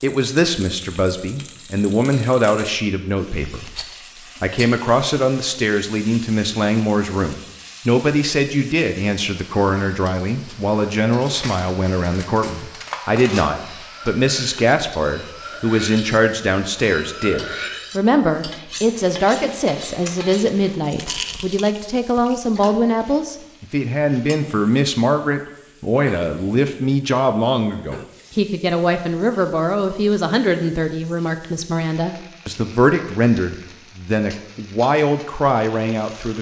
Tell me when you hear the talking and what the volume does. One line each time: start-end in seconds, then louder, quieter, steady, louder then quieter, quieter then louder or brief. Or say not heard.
0.0-36.3 steady.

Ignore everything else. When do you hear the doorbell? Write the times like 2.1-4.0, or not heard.
not heard.